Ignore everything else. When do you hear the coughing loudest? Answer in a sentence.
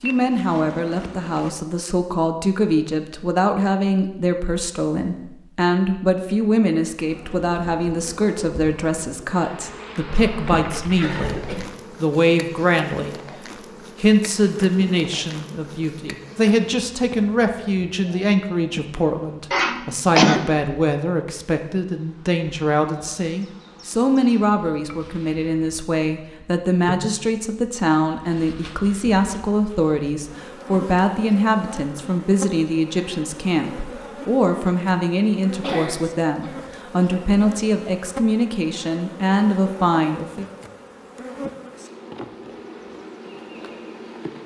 The volume of the coughing peaks at 20 seconds.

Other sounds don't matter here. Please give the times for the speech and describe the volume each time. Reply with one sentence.
The speech can be heard from 0.0 to 11.4 s, at a steady volume; briefly from 12.0 to 13.2 s; and from 14.0 to 40.5 s, at a steady volume.